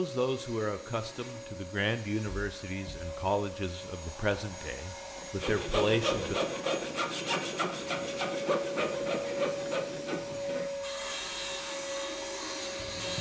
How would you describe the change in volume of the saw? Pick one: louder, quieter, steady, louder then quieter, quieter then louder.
quieter.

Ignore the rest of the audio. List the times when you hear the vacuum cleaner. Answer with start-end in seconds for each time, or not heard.
0.0-13.1.